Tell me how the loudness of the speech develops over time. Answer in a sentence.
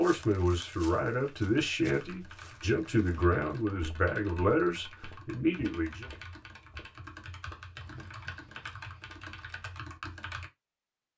The volume of the speech stays about the same.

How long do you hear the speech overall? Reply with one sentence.
You can hear the speech for 6 seconds altogether.